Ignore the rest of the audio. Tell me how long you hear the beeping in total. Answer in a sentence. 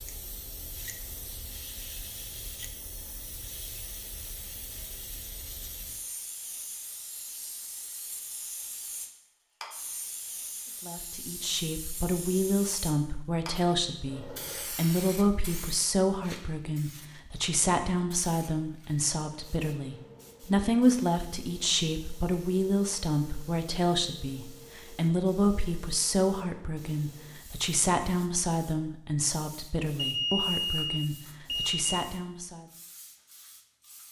You can hear the beeping for 2 seconds altogether.